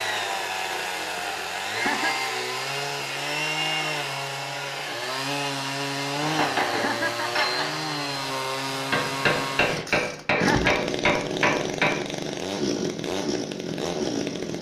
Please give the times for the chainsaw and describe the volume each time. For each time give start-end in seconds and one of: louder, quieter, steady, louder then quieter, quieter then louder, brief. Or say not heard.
0.0-14.5 steady.